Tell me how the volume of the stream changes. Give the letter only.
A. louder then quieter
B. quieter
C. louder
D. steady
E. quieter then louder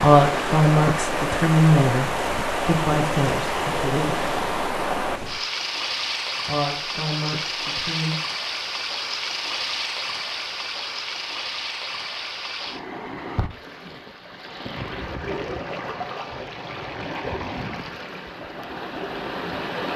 B.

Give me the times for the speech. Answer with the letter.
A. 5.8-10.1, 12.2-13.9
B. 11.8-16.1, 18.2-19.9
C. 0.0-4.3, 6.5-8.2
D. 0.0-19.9
C.